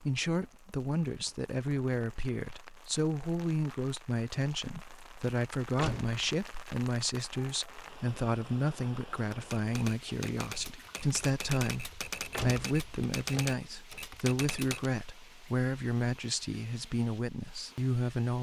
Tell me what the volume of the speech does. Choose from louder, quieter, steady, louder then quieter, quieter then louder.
steady.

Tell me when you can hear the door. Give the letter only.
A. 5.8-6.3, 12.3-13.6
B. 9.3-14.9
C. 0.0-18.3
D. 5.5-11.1
A.